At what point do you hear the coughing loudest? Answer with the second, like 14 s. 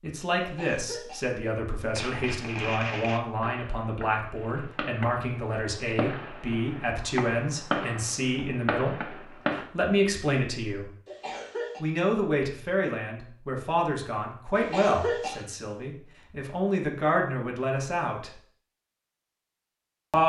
15 s.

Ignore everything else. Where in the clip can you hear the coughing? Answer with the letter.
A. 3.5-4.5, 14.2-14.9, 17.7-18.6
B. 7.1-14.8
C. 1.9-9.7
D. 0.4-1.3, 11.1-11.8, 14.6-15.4
D.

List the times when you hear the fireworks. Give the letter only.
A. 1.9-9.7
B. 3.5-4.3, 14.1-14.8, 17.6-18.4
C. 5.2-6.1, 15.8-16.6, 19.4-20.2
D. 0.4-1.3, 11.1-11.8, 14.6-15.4
A.